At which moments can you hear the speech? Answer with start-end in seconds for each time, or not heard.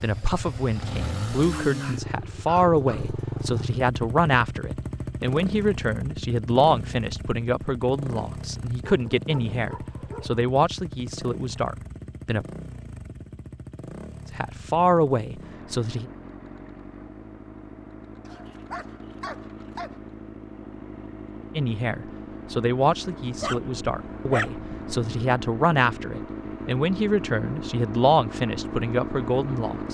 0.0-12.4, 14.3-16.1, 21.6-29.8.